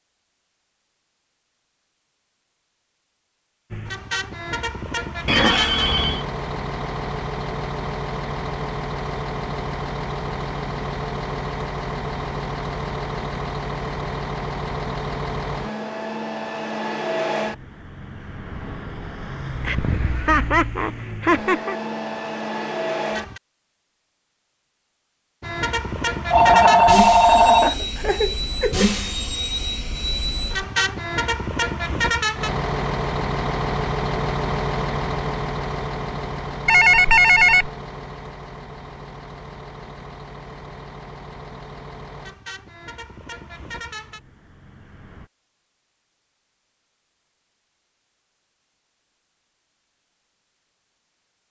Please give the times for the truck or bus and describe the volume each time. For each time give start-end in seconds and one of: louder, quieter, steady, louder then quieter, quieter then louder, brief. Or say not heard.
3.7-23.4 steady
25.4-45.3 quieter.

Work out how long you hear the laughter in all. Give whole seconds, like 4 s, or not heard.
5 s.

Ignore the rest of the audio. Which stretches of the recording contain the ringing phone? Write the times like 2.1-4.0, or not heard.
5.2-6.2, 26.3-27.8, 36.6-37.7.